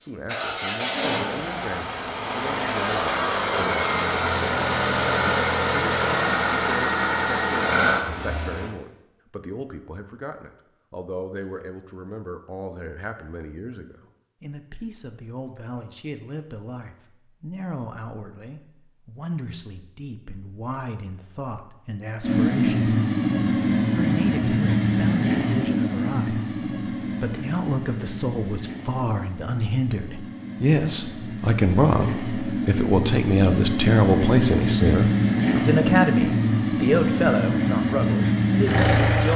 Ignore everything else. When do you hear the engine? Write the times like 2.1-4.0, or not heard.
0.1-8.7, 22.2-39.3.